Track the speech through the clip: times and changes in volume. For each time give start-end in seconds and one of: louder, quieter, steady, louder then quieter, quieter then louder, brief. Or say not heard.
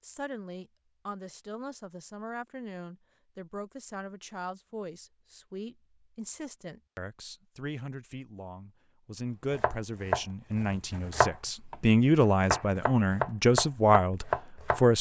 0.0-14.9 louder.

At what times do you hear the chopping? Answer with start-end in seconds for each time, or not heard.
9.5-14.8.